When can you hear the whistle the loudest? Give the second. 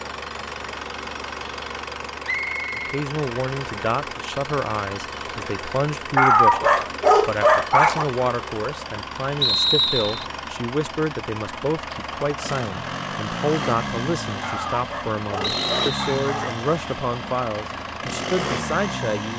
10 s.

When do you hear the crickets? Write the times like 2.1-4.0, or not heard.
not heard.